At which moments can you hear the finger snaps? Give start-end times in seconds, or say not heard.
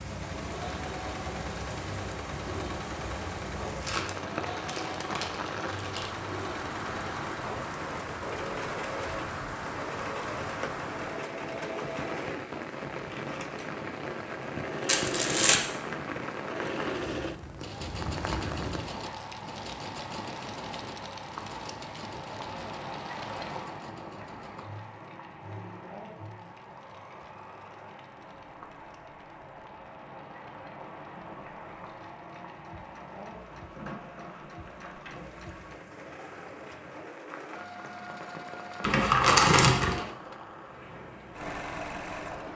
not heard.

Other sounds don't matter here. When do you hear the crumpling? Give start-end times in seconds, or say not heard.
3.8-6.1, 14.8-15.6, 38.8-40.0.